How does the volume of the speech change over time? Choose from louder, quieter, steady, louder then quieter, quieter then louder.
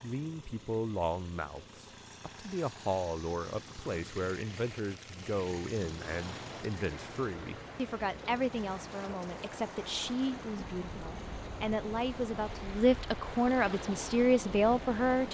louder.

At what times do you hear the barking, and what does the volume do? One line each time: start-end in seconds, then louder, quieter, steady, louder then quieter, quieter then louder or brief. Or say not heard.
not heard.